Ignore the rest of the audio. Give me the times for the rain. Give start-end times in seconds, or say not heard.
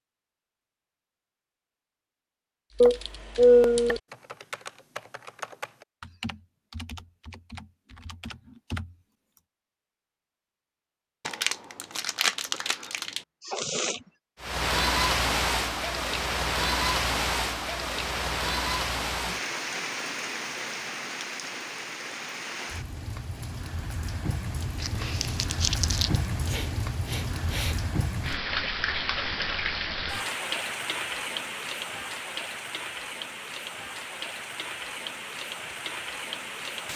14.4-36.9.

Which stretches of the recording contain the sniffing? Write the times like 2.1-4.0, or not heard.
2.8-4.0, 13.4-14.0, 26.4-27.8.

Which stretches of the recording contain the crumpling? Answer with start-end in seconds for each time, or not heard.
11.2-13.2, 24.8-26.2.